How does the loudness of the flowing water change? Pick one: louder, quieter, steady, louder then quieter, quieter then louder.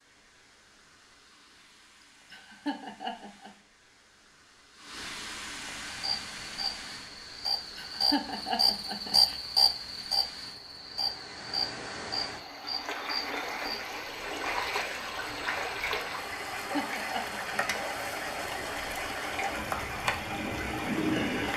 louder.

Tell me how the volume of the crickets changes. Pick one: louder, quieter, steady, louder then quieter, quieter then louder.
quieter then louder.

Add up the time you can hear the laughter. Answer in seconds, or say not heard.
4 s.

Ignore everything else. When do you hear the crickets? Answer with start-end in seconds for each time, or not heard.
5.8-21.5.